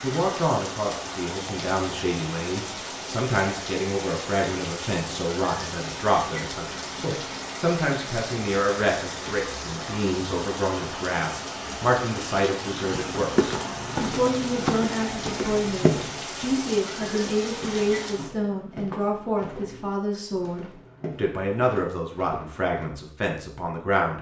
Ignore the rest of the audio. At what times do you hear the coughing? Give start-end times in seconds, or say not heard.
not heard.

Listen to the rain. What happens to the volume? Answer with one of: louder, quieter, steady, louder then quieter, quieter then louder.
steady.